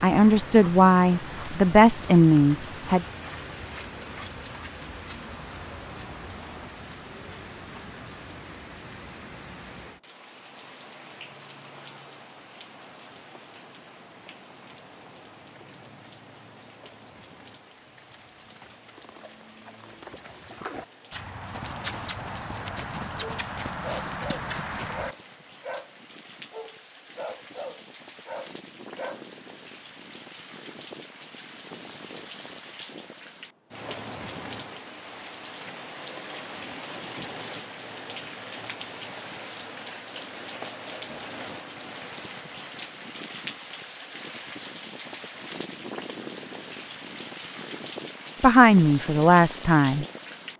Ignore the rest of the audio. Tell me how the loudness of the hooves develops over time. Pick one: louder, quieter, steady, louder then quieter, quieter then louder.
louder.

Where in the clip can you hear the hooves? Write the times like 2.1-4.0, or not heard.
17.6-25.1.